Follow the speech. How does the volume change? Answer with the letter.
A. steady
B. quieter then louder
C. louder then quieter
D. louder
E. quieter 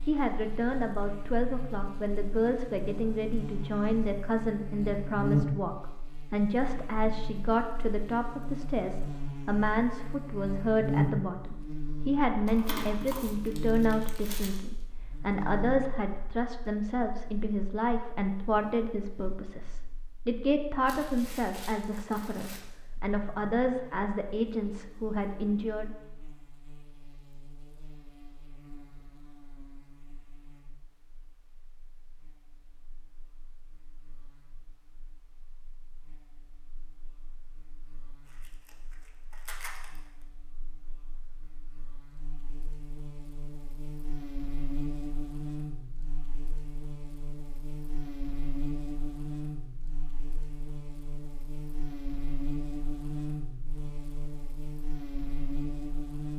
A.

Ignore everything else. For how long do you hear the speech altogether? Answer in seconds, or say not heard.
26 s.